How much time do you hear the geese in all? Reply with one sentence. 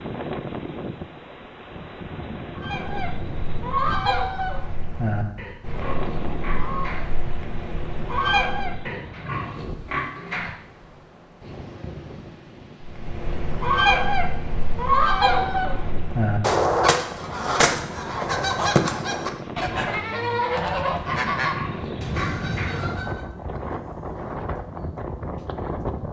The geese can be heard for 17 seconds in total.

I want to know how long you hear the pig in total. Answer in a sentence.
You can hear the pig for 5 seconds altogether.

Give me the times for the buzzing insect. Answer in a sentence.
You can't hear the buzzing insect here.